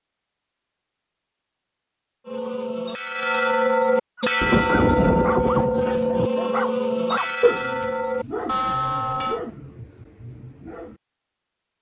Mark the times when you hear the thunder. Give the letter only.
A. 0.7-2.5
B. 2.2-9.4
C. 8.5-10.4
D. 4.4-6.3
D.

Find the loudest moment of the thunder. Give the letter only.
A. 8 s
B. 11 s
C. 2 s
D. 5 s
D.